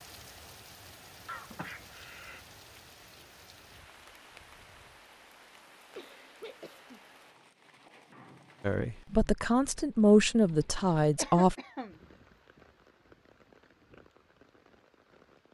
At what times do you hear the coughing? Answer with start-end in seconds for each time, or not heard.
1.2-2.4, 6.0-7.0, 11.2-11.9.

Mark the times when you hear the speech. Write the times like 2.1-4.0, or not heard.
8.6-11.6.